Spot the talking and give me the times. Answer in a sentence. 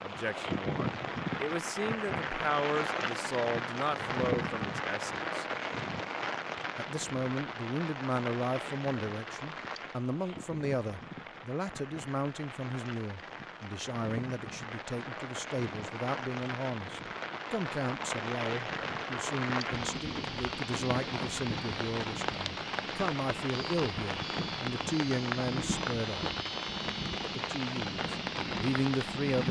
You can hear the talking from 0.0 to 5.5 s, from 6.8 to 26.4 s and from 27.2 to 29.4 s.